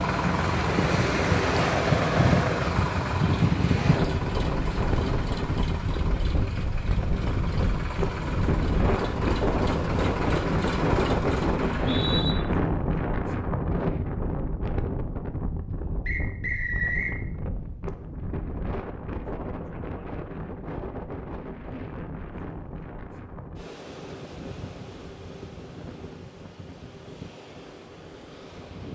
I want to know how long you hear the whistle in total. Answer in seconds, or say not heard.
2 s.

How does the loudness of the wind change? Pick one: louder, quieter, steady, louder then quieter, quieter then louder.
quieter.